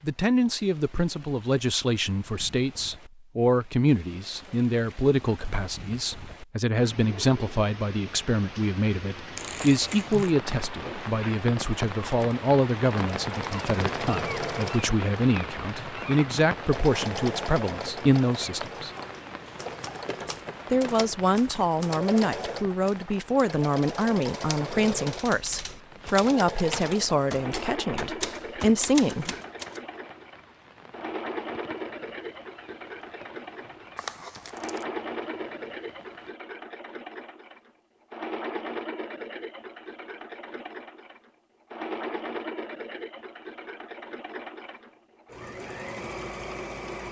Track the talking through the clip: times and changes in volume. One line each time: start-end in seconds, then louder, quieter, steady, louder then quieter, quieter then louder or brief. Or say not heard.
0.0-18.9 steady
20.7-29.4 steady.